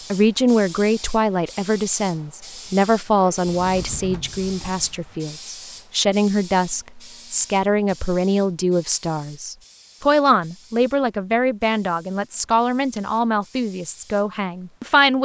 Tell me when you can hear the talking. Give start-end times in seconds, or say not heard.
0.1-15.2.